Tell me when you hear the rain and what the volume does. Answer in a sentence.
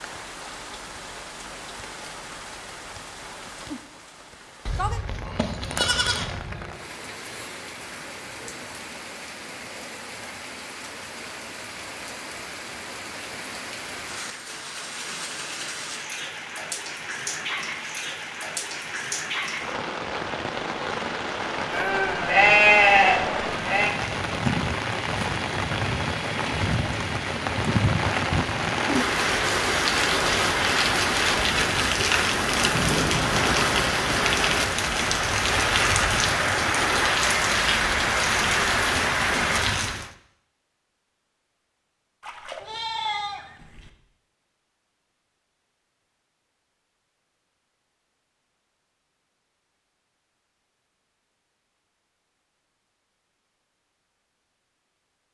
The rain can be heard from 0.0 to 40.1 s, getting louder.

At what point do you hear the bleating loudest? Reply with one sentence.
The volume of the bleating peaks at 23 seconds.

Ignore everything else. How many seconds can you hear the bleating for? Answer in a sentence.
The bleating can be heard for 6 seconds in total.